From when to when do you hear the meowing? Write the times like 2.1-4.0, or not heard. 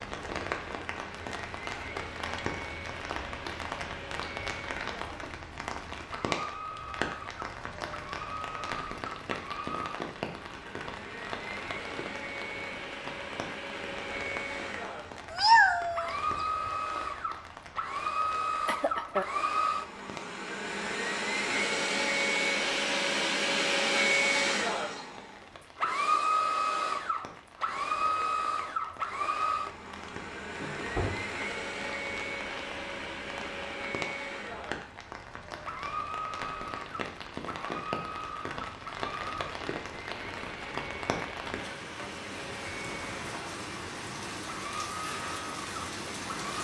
15.3-16.1.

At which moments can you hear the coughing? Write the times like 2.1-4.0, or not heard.
18.6-19.4, 30.6-31.4.